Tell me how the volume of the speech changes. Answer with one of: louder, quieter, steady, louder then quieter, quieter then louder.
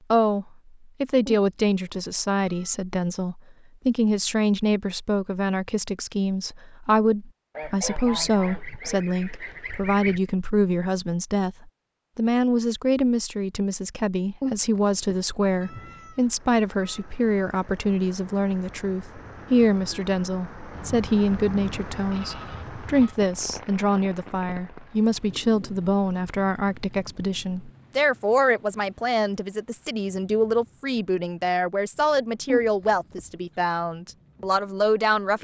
steady.